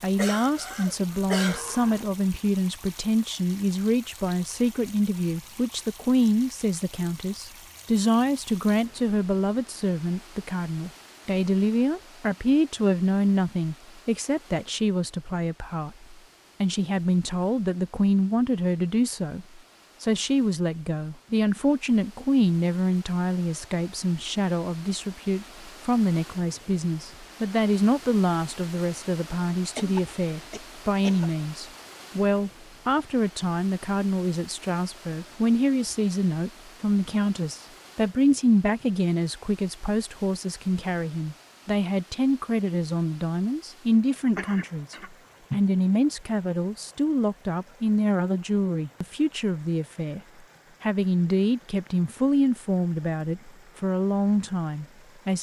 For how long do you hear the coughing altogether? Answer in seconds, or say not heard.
5 s.